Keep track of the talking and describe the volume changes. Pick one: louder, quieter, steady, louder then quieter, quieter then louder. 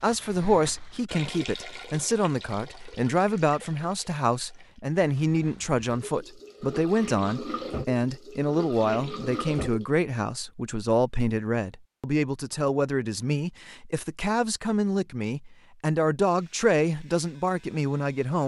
steady.